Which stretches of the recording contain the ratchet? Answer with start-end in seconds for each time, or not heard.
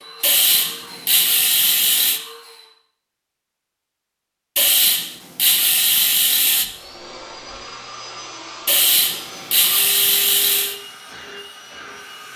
0.2-2.2, 4.5-6.7, 8.7-10.8.